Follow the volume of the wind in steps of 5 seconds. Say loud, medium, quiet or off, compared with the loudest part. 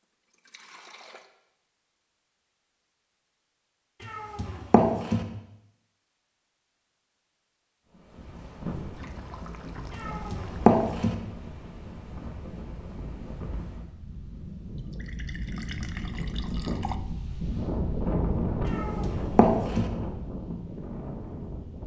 off, medium, medium, loud, medium.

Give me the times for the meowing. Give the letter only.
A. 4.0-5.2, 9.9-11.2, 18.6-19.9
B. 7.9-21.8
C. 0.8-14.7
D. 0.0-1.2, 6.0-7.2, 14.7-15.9
A.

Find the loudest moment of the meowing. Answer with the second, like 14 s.
11 s.